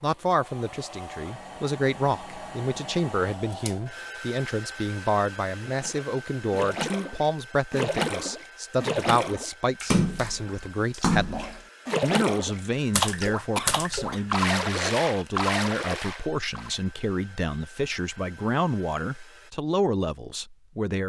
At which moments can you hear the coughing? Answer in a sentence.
The coughing can be heard from 13.6 to 14.2 s.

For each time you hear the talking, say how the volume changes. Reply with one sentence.
You can hear the talking from 0.0 to 21.0 s, at a steady volume.